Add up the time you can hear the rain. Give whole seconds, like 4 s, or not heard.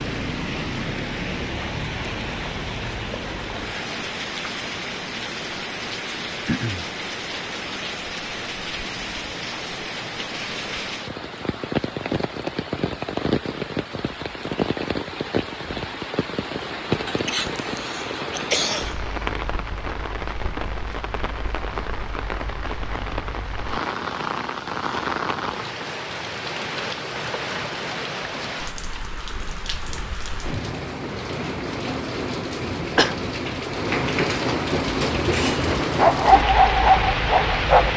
38 s.